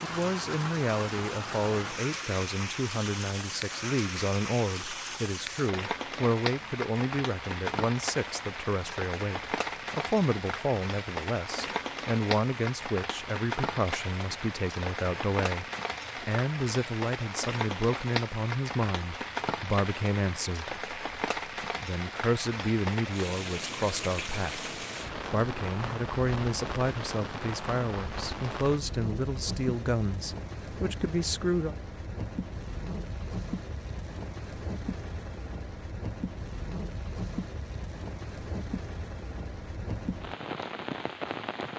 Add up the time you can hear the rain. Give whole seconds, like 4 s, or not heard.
42 s.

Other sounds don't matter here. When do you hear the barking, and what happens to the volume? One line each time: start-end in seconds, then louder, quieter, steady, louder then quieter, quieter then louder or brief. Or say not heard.
not heard.